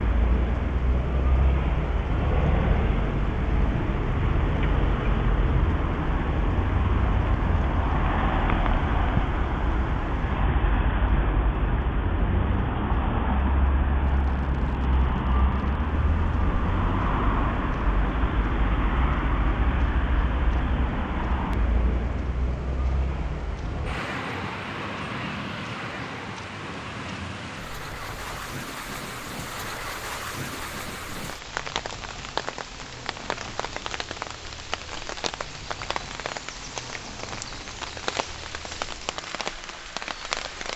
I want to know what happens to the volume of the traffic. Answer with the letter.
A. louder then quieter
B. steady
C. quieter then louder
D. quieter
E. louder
D.